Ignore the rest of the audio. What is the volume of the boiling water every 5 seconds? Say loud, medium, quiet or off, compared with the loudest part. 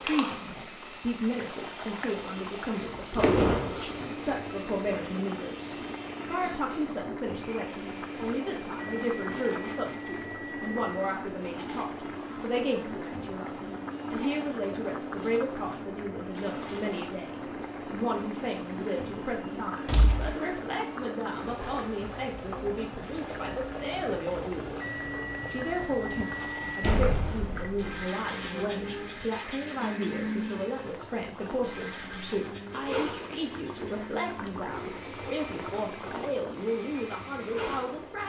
loud, loud, loud, loud, loud, medium, loud, loud.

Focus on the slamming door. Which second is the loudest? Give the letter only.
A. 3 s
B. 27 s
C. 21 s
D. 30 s
A.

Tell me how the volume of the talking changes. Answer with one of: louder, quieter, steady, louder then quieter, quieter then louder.
steady.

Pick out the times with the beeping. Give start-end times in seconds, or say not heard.
8.8-11.2, 24.8-26.9.